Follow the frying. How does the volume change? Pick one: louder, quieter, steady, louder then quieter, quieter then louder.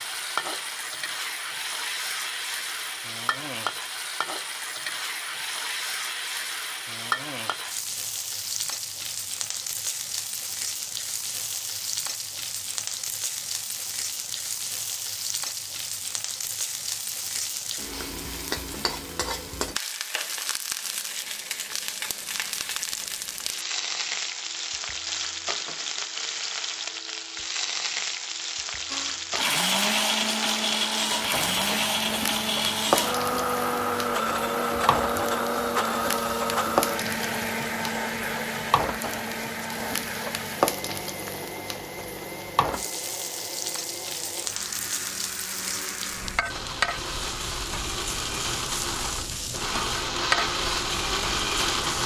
steady.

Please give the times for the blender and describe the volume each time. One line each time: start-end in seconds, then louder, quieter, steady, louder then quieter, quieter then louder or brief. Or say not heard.
28.9-52.0 quieter then louder.